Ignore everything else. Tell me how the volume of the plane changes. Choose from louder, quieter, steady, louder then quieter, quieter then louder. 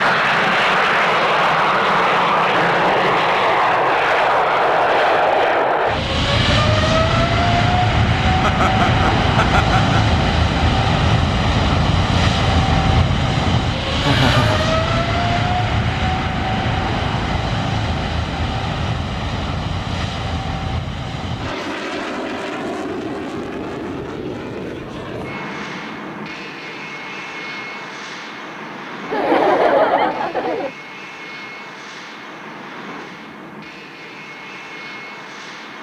quieter.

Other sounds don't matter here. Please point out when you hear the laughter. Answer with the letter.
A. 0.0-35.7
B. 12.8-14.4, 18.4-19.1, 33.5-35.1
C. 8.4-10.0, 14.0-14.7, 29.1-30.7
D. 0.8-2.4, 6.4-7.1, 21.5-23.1
C.